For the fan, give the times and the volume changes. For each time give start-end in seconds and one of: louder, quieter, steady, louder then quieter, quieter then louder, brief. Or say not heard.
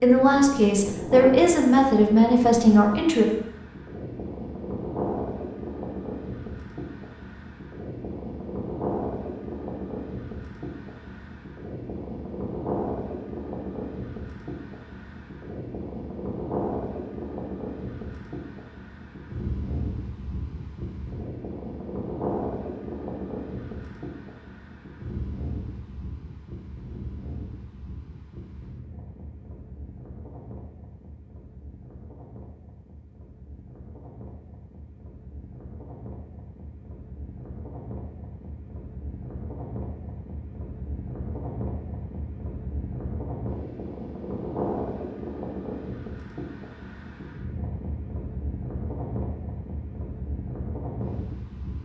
0.0-51.8 quieter then louder.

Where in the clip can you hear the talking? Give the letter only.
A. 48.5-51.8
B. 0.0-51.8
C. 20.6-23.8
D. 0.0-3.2
D.